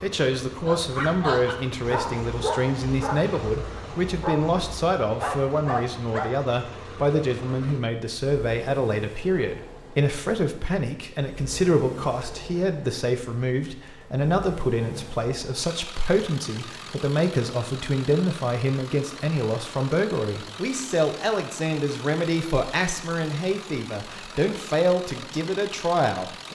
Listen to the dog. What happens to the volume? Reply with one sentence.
The loudness of the dog goes down, then up.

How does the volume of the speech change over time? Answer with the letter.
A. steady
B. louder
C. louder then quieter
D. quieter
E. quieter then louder
A.